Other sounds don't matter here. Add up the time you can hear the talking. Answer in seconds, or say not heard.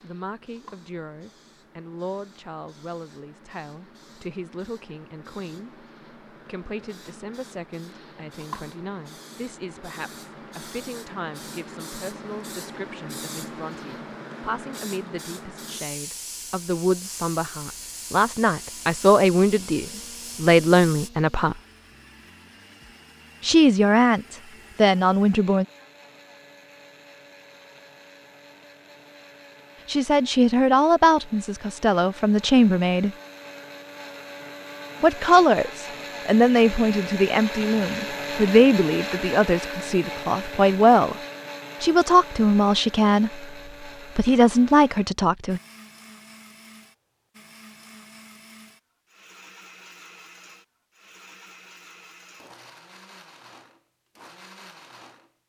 36 s.